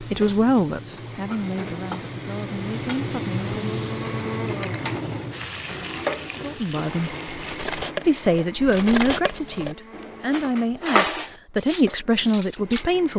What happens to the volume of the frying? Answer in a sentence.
The volume of the frying goes up, then down.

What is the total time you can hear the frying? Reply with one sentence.
You can hear the frying for 8 seconds altogether.